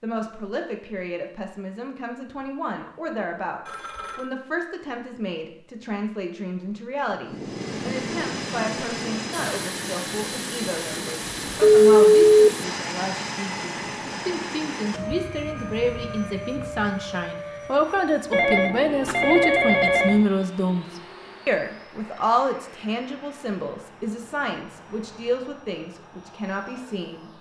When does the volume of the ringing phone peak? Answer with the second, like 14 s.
12 s.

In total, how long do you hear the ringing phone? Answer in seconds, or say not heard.
4 s.